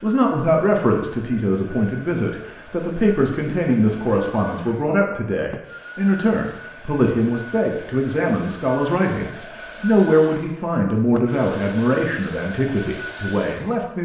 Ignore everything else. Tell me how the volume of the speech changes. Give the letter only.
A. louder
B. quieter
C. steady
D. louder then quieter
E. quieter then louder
C.